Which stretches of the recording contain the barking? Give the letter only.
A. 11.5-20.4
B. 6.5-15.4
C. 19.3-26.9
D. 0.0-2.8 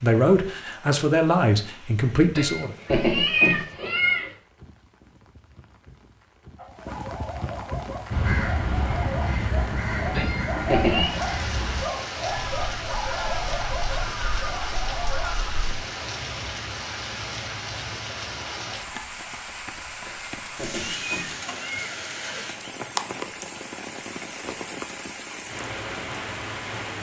B.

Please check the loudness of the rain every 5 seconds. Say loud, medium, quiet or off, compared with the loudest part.
quiet, medium, loud, loud, loud, loud.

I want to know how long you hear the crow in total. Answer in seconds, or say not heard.
8 s.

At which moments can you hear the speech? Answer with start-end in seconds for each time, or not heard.
0.0-2.8.